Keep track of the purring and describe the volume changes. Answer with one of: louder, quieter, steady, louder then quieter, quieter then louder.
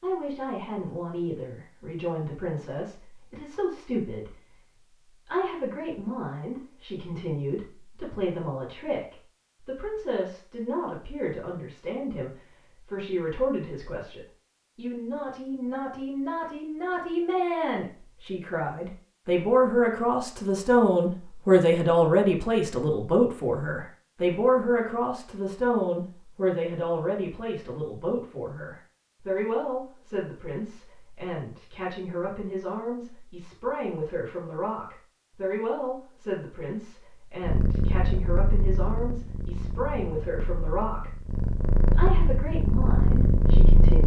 quieter then louder.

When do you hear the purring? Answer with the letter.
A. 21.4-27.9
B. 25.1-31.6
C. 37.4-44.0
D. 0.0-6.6
C.